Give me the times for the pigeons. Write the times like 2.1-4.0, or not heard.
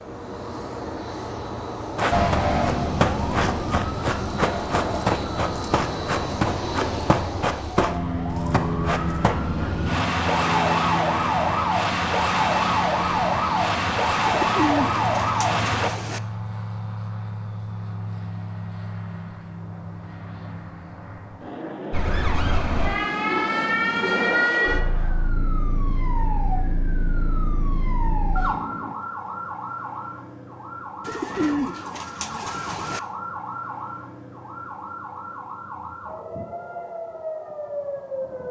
14.2-16.2, 31.0-33.0.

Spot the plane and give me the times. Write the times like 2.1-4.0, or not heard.
0.0-28.9.